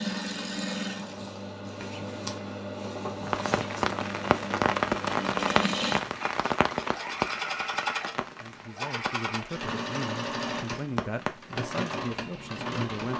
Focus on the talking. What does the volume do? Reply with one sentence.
The volume of the talking stays about the same.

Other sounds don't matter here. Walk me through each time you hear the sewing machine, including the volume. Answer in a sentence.
You can hear the sewing machine from 0.0 to 13.1 s, at a steady volume.